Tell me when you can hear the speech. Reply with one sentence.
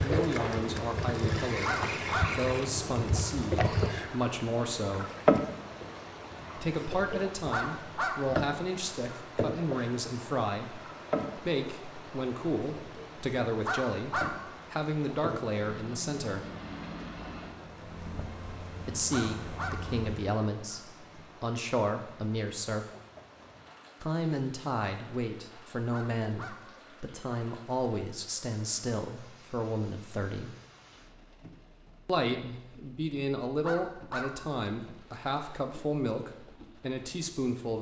The speech can be heard from 0.0 to 5.0 s, from 6.5 to 16.4 s, from 18.9 to 20.8 s, from 21.4 to 22.9 s, from 24.0 to 30.5 s and from 32.0 to 37.7 s.